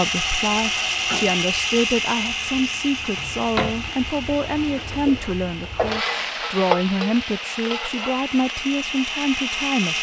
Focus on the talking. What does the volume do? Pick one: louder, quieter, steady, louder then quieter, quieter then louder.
steady.